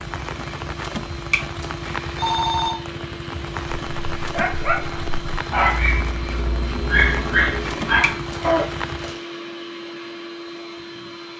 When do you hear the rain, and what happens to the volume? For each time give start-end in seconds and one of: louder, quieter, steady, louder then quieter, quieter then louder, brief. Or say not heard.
0.0-9.2 steady.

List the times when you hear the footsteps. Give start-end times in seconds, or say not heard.
not heard.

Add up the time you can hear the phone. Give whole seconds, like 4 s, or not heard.
2 s.